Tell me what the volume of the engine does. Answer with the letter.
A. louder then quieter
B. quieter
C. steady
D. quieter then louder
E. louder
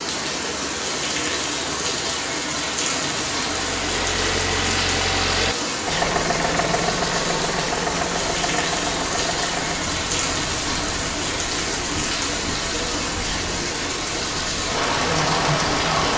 B.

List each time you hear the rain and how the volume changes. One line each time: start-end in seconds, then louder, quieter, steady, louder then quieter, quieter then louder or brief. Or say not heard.
0.0-16.1 steady.